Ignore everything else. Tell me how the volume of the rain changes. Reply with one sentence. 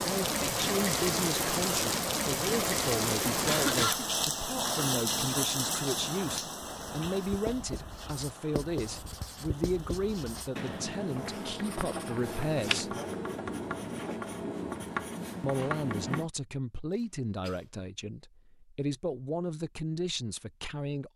The loudness of the rain goes down.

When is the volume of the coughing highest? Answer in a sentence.
The volume of the coughing peaks at 4 seconds.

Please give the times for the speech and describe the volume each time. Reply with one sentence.
You can hear the speech from 0.1 to 12.9 s, at a steady volume; and from 15.4 to 21.1 s, getting quieter then louder.